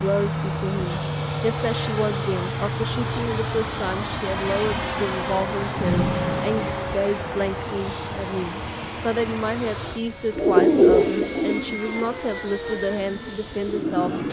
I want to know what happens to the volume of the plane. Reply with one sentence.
The loudness of the plane goes down.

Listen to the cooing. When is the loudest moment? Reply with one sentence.
The volume of the cooing peaks at 11 seconds.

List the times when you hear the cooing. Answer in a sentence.
The cooing can be heard from 10.3 to 14.2 s.